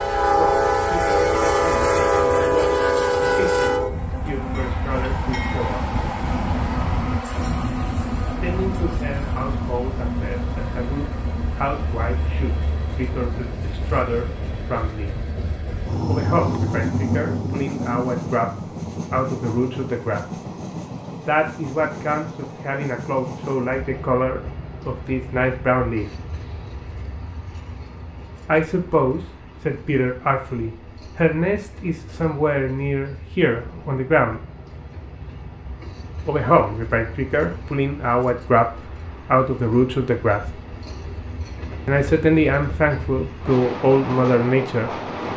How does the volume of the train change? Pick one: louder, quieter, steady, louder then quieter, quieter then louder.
quieter then louder.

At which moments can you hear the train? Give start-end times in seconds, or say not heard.
0.0-45.3.